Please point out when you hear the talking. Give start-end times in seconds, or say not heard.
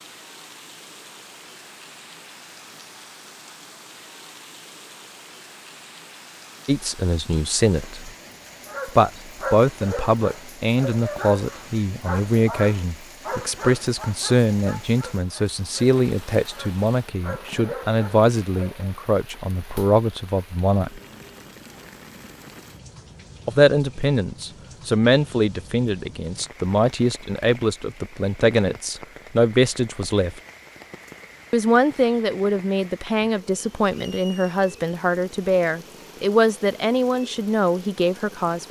6.7-8.1, 8.8-21.0, 23.4-30.4, 31.5-38.6.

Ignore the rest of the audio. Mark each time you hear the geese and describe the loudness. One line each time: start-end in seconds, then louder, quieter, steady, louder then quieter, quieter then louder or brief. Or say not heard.
not heard.